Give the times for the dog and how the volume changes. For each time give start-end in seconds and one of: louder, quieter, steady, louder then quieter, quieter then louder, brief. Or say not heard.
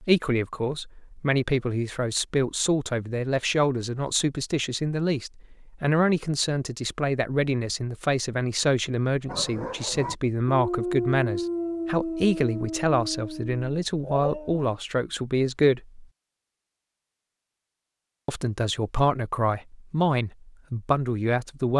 9.2-14.7 louder then quieter.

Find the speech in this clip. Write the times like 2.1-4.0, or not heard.
0.0-16.1, 18.2-21.7.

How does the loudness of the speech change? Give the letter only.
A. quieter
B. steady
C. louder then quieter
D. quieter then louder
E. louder
B.